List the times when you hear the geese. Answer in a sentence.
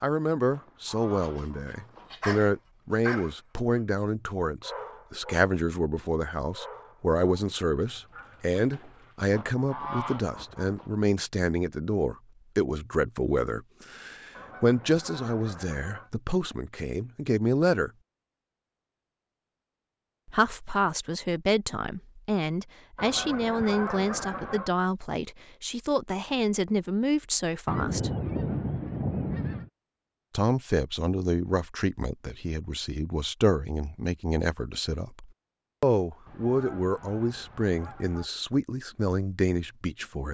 You can hear the geese from 0.5 to 2.1 s, from 9.3 to 10.9 s, from 14.3 to 16.1 s, from 22.9 to 24.7 s, from 27.6 to 29.7 s and from 36.2 to 38.2 s.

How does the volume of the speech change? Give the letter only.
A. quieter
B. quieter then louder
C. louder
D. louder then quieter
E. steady
E.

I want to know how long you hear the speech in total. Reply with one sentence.
The speech can be heard for 36 seconds in total.